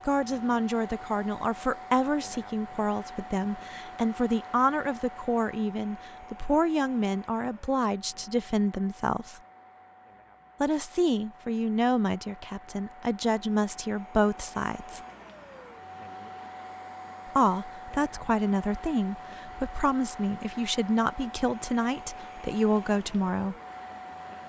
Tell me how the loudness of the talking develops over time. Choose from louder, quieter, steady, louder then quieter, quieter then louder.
steady.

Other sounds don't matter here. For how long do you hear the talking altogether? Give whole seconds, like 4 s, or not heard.
20 s.